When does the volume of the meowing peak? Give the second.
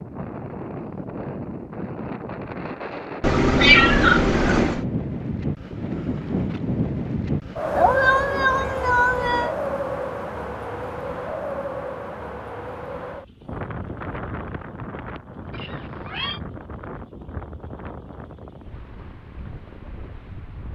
4 s.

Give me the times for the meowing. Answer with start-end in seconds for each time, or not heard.
3.2-4.8, 7.8-9.5, 15.5-16.4.